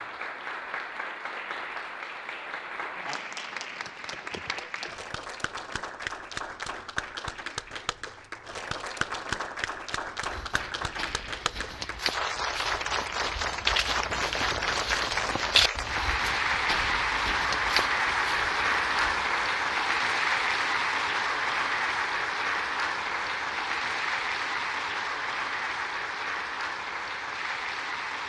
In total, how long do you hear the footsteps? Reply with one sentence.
The footsteps can be heard for 9 seconds in total.